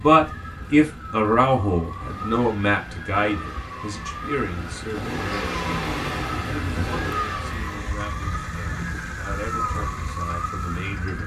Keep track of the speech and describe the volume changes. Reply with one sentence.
The volume of the speech goes down.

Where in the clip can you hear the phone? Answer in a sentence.
You can't hear the phone here.